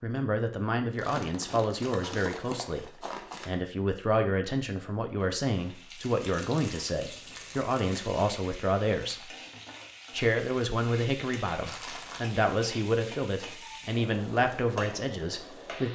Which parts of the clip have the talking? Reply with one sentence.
The talking can be heard from 0.0 to 9.3 s and from 10.1 to 15.8 s.